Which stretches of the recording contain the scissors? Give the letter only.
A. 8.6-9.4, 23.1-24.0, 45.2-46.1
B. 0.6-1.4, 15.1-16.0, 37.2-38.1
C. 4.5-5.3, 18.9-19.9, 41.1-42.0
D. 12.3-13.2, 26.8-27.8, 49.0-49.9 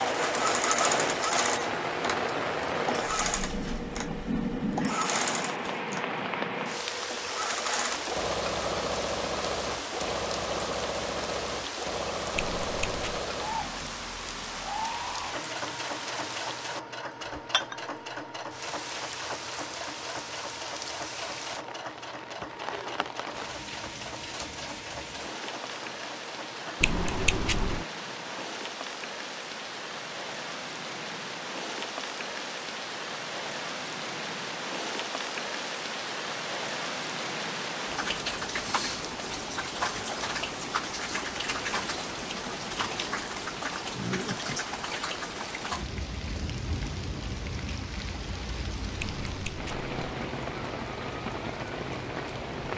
D.